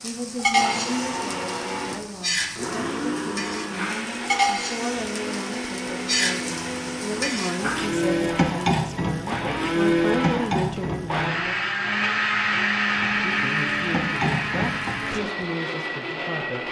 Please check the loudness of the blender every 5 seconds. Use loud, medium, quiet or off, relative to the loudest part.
medium, loud, loud, medium.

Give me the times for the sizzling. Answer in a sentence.
The sizzling can be heard from 0.0 to 11.3 s and from 12.8 to 15.2 s.